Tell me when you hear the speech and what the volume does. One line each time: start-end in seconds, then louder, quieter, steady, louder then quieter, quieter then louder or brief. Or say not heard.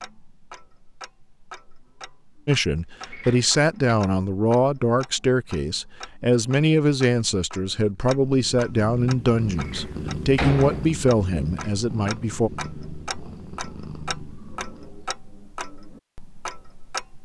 2.5-12.5 steady.